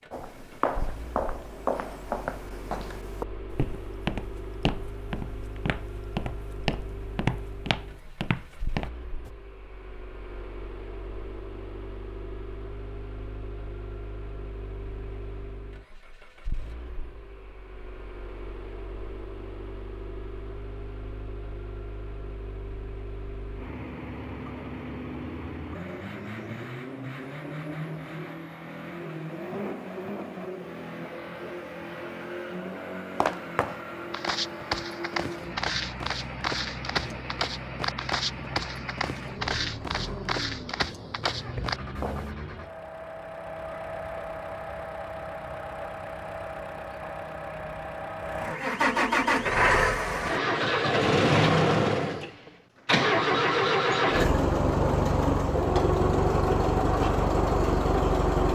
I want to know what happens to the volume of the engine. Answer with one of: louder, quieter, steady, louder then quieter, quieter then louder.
louder.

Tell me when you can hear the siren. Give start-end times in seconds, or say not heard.
not heard.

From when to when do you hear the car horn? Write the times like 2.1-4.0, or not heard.
not heard.